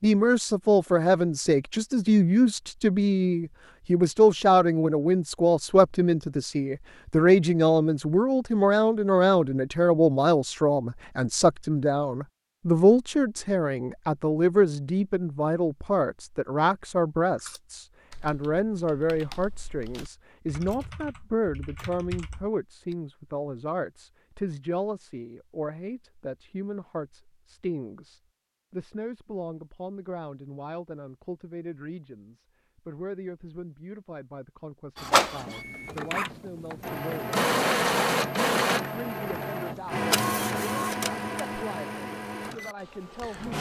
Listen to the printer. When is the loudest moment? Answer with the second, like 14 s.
38 s.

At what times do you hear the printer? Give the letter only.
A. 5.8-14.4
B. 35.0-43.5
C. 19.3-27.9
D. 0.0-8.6
B.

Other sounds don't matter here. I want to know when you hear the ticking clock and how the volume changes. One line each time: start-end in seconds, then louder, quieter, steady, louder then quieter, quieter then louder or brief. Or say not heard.
not heard.